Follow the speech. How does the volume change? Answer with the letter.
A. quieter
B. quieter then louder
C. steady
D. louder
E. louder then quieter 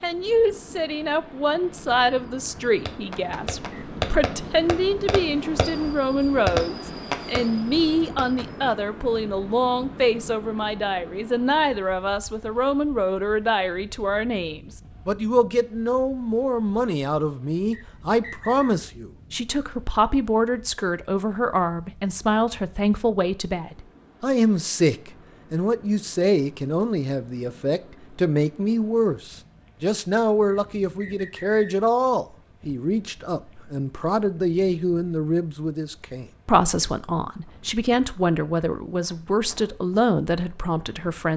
C.